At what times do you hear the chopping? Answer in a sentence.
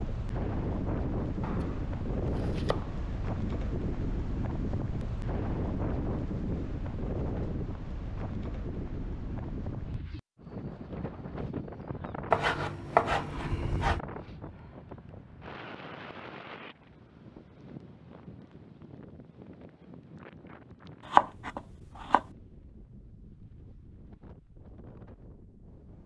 The chopping can be heard from 1.4 to 3.0 s, from 12.3 to 14.0 s and from 21.1 to 22.2 s.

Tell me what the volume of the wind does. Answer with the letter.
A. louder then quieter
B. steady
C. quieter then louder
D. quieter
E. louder
D.